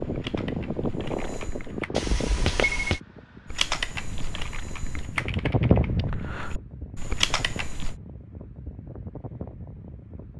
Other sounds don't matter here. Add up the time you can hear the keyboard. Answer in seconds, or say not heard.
6 s.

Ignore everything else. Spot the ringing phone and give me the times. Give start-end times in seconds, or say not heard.
1.9-3.0.